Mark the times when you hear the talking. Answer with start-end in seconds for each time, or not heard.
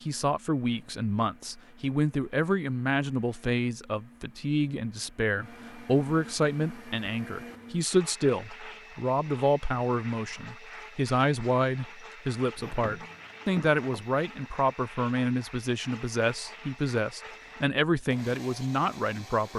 0.0-19.5.